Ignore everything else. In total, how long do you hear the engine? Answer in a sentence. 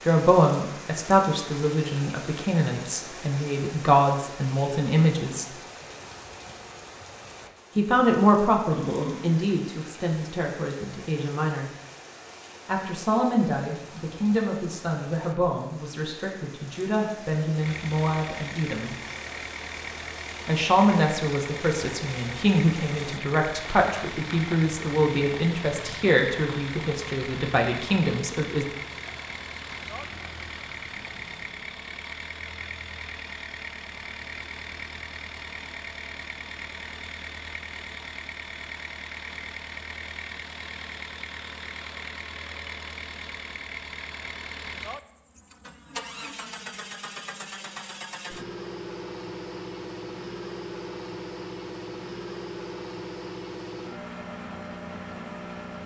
The engine can be heard for 38 seconds in total.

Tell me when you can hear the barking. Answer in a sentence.
The barking can be heard from 8.7 to 9.4 s.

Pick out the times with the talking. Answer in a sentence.
The talking can be heard from 0.1 to 5.5 s, from 7.8 to 11.7 s, from 12.7 to 18.9 s and from 20.4 to 28.6 s.